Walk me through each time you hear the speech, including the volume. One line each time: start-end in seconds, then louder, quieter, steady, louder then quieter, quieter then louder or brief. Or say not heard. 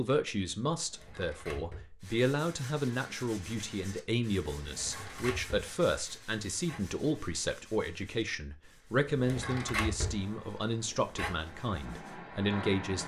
0.0-13.0 steady.